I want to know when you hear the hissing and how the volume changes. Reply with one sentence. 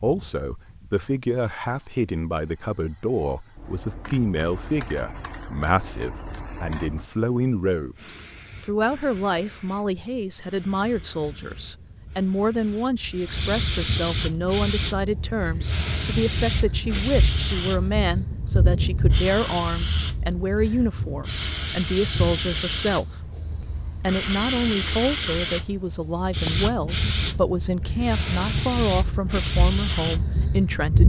The hissing can be heard from 0.1 to 31.0 s, getting louder.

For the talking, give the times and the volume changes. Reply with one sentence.
The talking can be heard from 0.0 to 31.0 s, at a steady volume.